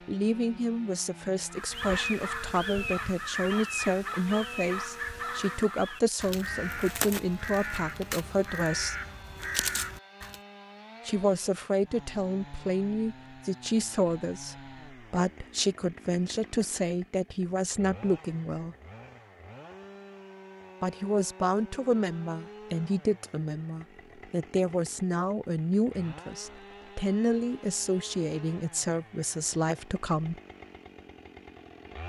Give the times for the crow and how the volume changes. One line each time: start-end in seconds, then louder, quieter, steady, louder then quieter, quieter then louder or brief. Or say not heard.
1.5-10.4 steady.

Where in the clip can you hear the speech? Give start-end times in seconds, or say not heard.
0.1-8.9, 11.1-18.8, 20.8-30.4.